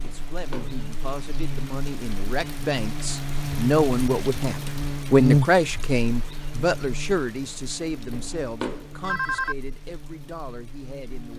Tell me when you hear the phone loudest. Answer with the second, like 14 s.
9 s.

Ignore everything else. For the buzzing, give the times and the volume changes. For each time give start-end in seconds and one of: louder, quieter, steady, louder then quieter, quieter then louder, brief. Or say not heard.
0.0-11.3 louder then quieter.